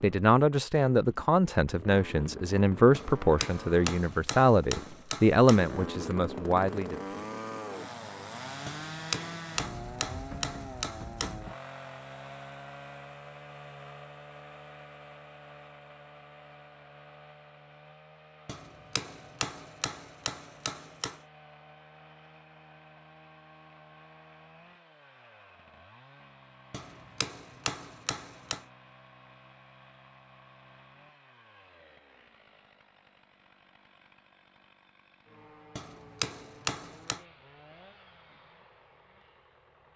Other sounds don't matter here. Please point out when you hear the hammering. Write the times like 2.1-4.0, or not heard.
2.9-5.8, 8.7-11.4, 18.4-21.2, 26.7-28.6, 35.8-37.2.